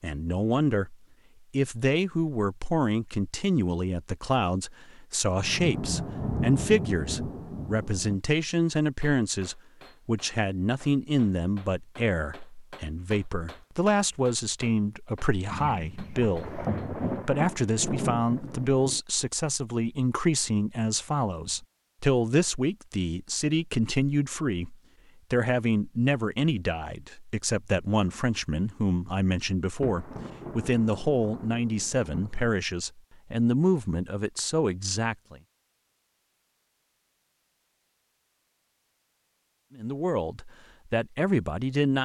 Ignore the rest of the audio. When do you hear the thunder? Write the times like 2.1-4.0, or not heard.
5.3-8.2, 15.5-19.0, 29.8-32.5.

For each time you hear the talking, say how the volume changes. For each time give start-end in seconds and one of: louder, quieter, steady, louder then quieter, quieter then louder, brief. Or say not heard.
0.0-35.4 steady
39.8-41.9 brief.